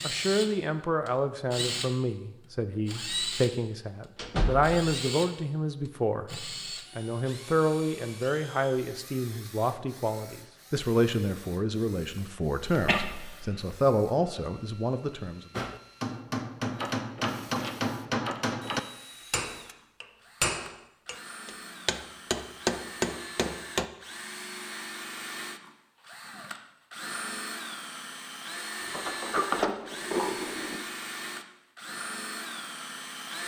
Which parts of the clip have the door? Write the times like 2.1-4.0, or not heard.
4.2-4.8, 16.8-18.8, 28.9-30.8.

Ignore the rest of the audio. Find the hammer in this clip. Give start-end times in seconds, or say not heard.
15.6-23.9.